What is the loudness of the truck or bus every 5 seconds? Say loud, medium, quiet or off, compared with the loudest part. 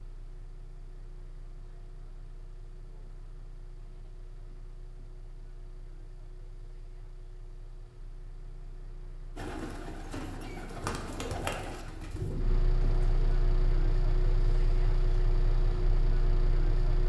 quiet, quiet, loud, loud.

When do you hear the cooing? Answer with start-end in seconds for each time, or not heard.
9.3-13.3.